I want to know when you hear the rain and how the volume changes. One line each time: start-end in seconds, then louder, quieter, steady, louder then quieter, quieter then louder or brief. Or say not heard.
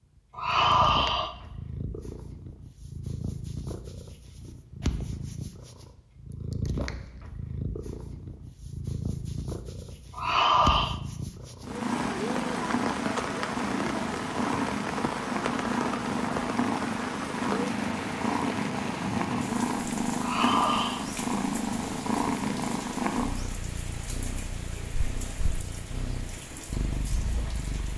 11.7-27.9 quieter.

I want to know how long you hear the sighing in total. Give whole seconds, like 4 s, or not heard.
3 s.